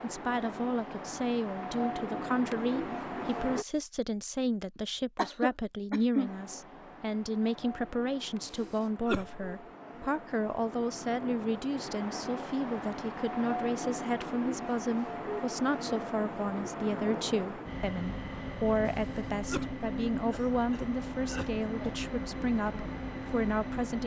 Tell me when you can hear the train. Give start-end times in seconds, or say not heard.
0.0-3.6, 6.2-24.0.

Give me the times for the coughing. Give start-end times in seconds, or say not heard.
4.8-6.3, 8.4-9.4, 18.9-21.5.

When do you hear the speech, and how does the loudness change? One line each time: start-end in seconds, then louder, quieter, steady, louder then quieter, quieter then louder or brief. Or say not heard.
0.0-24.0 steady.